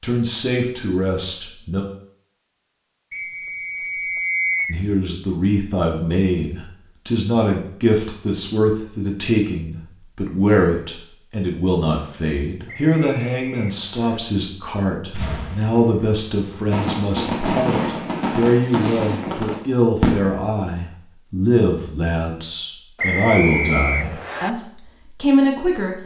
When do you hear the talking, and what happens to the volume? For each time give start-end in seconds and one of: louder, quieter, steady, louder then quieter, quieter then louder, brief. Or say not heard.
0.0-1.9 brief
4.7-26.0 steady.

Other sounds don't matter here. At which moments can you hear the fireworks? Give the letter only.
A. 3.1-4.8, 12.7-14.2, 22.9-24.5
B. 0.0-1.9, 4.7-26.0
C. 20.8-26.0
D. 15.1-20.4
D.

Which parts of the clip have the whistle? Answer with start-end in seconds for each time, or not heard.
3.1-4.8, 12.7-14.2, 22.9-24.5.